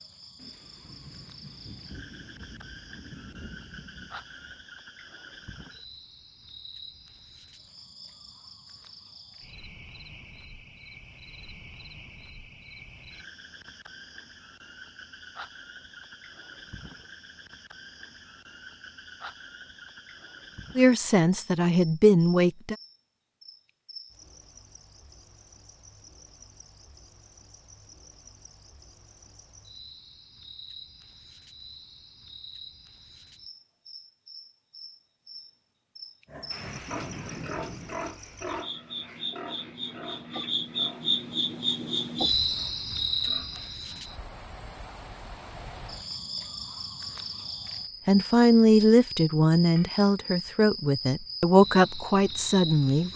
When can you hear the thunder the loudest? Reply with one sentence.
The loudest moment of the thunder is at 37 seconds.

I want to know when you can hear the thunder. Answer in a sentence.
The thunder can be heard from 0.3 to 4.6 s and from 36.5 to 38.1 s.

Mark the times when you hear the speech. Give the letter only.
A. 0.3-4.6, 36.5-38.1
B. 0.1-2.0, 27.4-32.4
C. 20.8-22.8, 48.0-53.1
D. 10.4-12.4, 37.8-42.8
C.